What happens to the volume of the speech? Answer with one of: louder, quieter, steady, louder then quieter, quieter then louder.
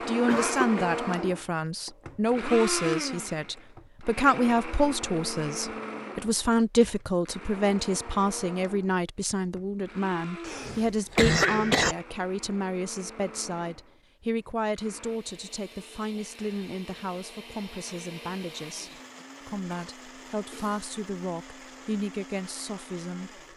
quieter.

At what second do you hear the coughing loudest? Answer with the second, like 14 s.
11 s.